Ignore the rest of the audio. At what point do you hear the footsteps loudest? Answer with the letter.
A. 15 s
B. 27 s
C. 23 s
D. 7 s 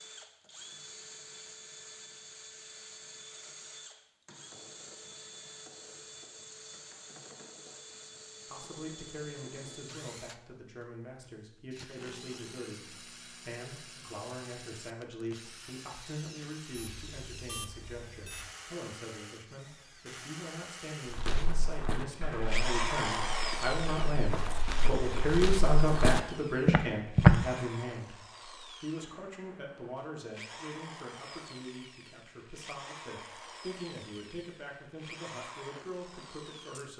B.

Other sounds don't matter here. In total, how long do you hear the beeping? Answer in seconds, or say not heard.
2 s.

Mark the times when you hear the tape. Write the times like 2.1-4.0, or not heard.
not heard.